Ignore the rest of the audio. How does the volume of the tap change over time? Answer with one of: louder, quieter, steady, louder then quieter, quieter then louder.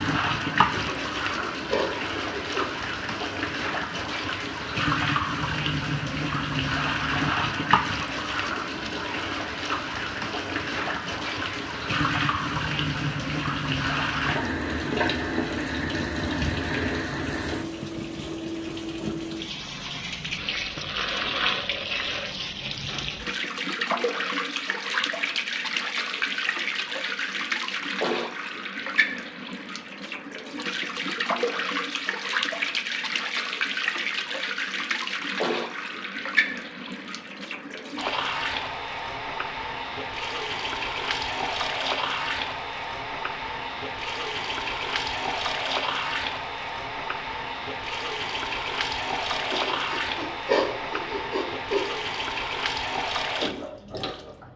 steady.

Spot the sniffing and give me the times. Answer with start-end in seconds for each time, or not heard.
0.6-2.6, 49.4-51.9.